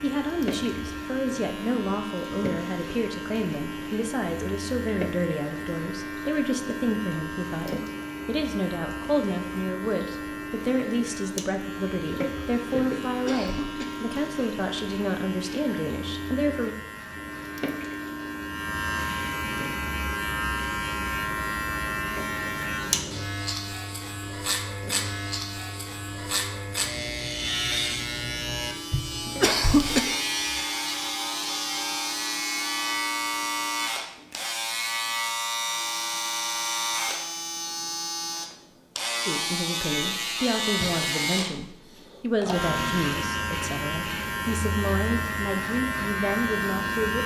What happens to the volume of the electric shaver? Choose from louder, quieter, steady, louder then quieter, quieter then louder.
louder.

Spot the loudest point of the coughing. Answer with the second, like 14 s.
30 s.